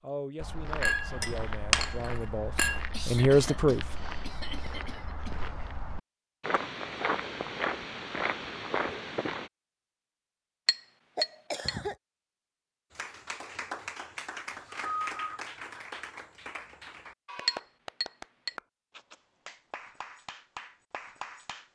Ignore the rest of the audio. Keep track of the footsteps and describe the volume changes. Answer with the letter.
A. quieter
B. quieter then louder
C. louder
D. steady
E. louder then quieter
C.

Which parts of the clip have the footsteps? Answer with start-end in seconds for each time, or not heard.
0.4-9.5.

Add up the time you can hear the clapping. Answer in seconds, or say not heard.
9 s.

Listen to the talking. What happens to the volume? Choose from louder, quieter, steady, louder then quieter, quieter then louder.
louder.